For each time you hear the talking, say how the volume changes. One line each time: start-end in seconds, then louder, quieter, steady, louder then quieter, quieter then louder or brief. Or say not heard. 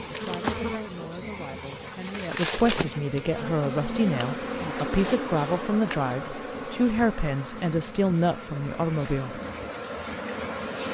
0.1-9.4 louder.